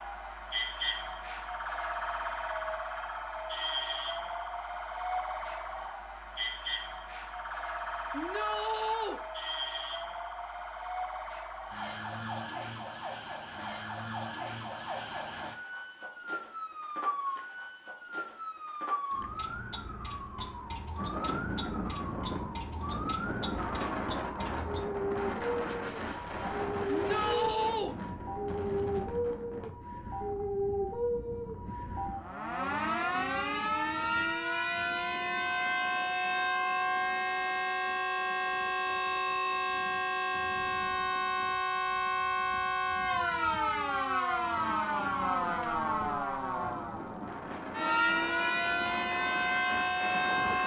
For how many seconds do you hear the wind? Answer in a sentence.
You can hear the wind for 30 seconds altogether.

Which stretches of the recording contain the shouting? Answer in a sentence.
The shouting can be heard from 8.1 to 9.2 s and from 26.9 to 27.9 s.